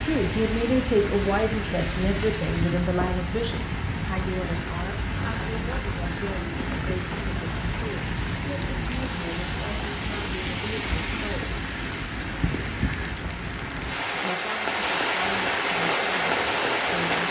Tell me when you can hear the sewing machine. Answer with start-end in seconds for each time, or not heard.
15.8-17.2.